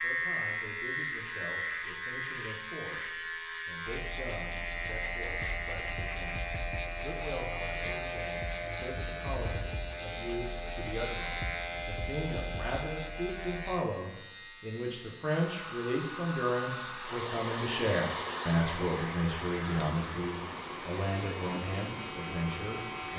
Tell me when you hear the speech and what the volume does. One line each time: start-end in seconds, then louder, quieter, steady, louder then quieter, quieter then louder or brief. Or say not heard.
0.0-23.1 louder.